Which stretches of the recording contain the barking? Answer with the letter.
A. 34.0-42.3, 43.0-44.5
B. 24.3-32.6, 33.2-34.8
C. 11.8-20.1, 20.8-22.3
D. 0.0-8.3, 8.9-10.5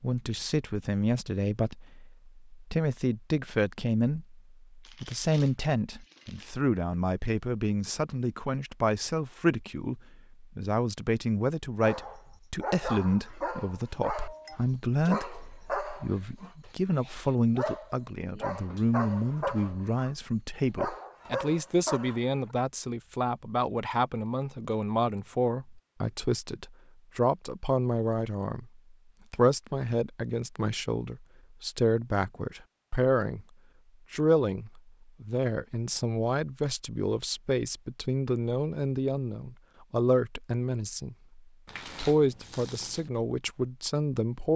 C.